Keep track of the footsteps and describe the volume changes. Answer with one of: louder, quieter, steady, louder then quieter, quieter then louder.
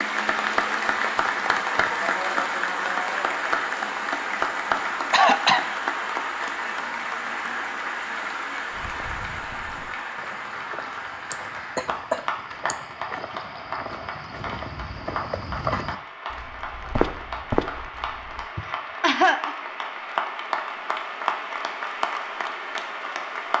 louder.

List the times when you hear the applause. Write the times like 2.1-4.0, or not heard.
0.0-23.5.